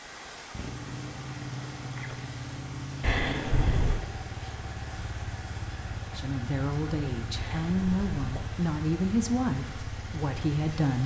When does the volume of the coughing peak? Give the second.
3 s.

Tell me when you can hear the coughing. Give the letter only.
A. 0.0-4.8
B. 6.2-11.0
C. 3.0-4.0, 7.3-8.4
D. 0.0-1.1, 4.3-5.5
C.